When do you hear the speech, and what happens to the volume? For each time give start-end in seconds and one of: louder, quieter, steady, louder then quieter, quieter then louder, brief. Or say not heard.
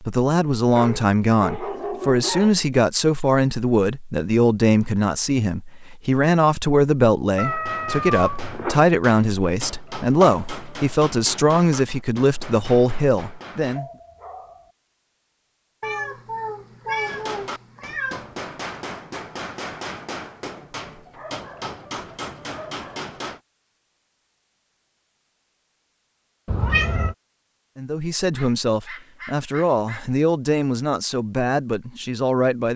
0.0-13.8 steady
27.8-32.7 steady.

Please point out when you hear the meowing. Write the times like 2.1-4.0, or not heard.
7.3-8.8, 15.8-18.3, 26.4-27.1.